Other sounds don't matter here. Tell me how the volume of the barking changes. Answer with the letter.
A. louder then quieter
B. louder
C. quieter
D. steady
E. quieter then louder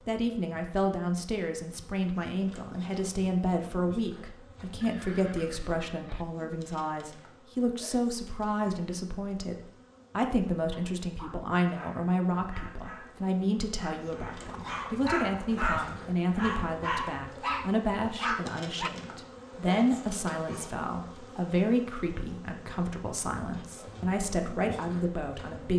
B.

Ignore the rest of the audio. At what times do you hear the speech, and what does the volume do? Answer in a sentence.
You can hear the speech from 0.1 to 25.7 s, at a steady volume.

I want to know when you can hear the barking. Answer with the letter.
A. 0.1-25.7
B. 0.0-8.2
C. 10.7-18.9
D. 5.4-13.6
C.